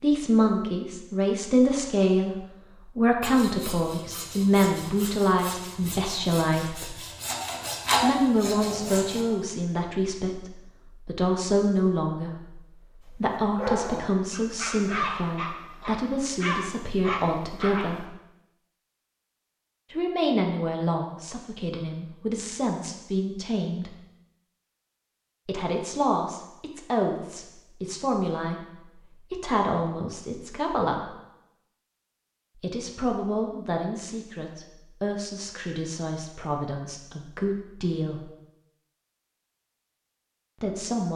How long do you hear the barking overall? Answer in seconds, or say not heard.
5 s.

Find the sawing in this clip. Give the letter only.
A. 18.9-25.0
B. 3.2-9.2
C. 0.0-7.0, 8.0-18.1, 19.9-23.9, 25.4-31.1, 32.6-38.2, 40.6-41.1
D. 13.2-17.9
B.